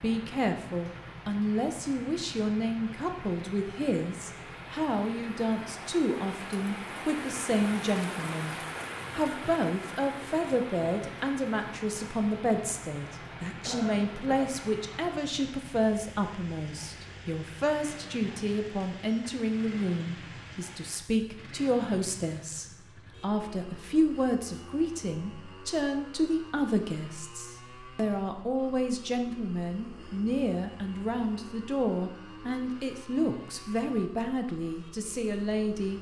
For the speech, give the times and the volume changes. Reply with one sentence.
You can hear the speech from 0.0 to 35.9 s, at a steady volume.